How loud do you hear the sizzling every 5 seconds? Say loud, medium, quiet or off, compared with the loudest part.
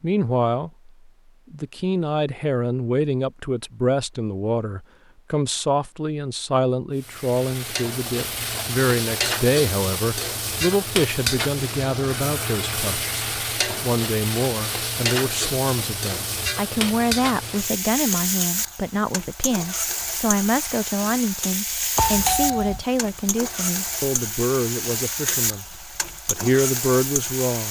off, loud, loud, loud, loud, loud.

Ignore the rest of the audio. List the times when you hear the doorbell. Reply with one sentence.
The doorbell can be heard from 21.9 to 22.9 s.